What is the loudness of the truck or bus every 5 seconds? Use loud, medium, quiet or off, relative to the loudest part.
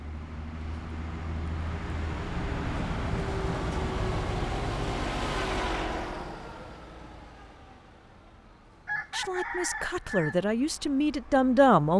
loud, loud, quiet.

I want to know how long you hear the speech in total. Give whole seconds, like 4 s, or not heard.
3 s.